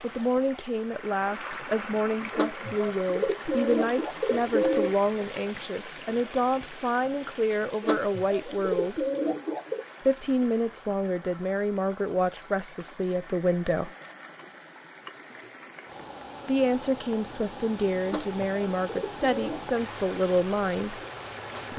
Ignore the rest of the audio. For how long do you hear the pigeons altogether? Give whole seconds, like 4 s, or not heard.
6 s.